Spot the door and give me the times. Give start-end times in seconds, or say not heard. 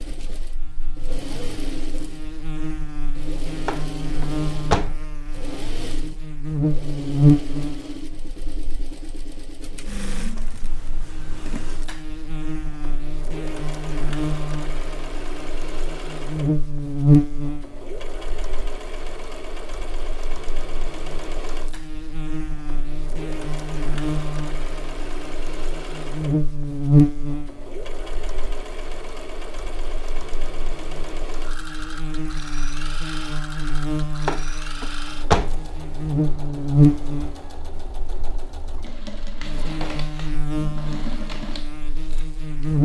3.6-5.0, 34.2-35.6.